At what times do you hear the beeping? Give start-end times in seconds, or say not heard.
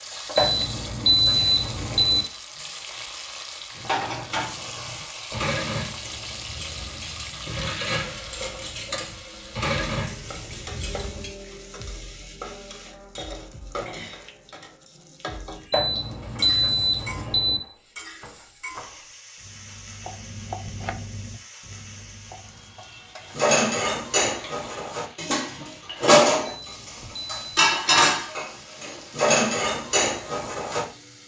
0.3-2.2, 15.7-17.6, 26.4-27.7.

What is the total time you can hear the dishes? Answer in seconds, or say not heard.
15 s.